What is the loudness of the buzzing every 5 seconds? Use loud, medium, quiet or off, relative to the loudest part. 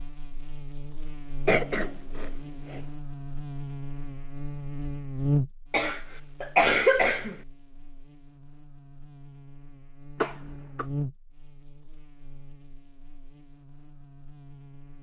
medium, loud, medium.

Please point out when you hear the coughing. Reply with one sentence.
The coughing can be heard from 1.4 to 2.8 s, from 5.7 to 7.3 s and from 10.2 to 10.8 s.